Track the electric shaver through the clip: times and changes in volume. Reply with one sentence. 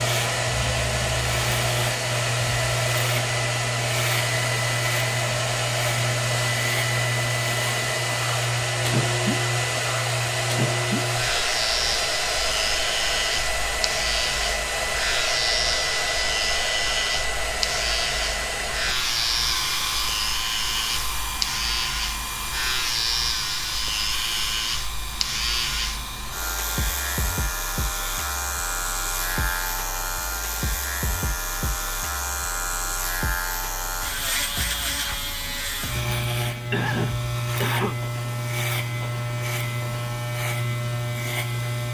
You can hear the electric shaver from 0.0 to 41.9 s, at a steady volume.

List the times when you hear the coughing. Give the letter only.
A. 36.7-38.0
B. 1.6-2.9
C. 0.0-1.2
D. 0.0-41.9
A.